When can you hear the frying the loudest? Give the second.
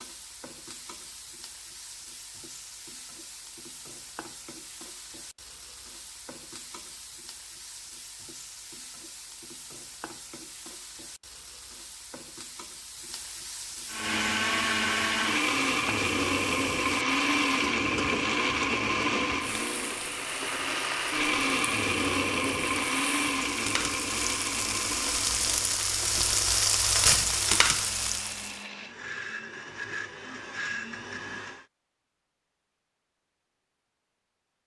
27 s.